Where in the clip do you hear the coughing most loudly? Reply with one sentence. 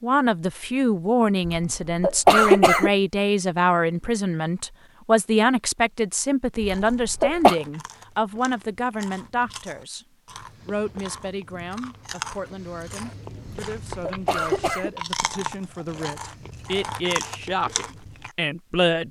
The volume of the coughing peaks at 2 seconds.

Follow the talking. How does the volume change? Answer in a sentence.
The volume of the talking goes down, then up.